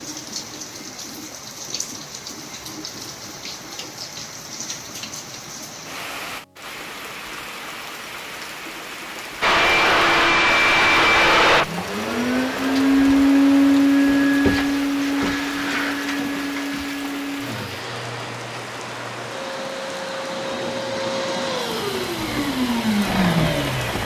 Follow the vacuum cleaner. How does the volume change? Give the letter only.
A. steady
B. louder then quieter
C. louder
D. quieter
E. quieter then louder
E.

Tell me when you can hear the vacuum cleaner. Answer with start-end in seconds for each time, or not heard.
9.4-24.0.